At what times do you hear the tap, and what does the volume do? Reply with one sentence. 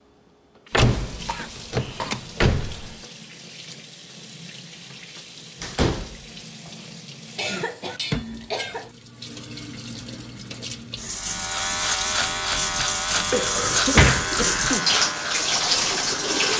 The tap can be heard from 0.0 to 16.5 s, getting louder.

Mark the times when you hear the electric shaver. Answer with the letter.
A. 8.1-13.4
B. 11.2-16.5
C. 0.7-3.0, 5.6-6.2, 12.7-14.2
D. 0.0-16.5
B.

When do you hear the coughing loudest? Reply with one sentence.
The volume of the coughing peaks at 14 seconds.